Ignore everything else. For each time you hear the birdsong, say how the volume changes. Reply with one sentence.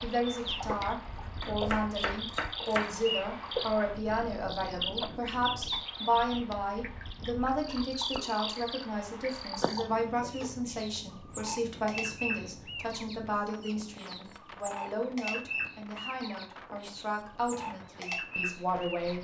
The birdsong can be heard from 0.0 to 19.1 s, at a steady volume.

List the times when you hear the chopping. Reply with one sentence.
You can hear the chopping from 1.4 to 3.0 s.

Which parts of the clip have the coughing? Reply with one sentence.
The coughing can be heard from 9.6 to 10.5 s.